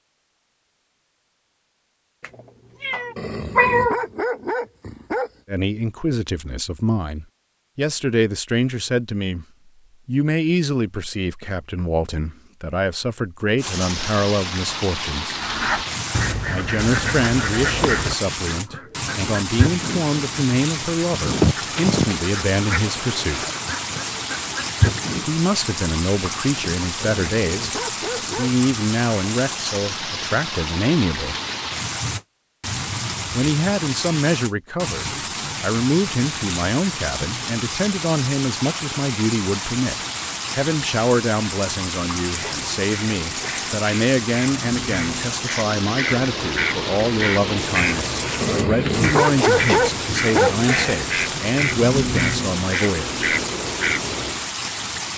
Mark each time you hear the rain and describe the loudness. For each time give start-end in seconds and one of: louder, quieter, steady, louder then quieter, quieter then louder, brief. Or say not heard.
13.6-55.1 steady.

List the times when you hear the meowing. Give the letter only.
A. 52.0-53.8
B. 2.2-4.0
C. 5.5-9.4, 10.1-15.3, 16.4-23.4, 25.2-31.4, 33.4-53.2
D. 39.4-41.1
B.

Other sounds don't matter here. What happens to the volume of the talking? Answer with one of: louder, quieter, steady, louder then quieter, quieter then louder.
steady.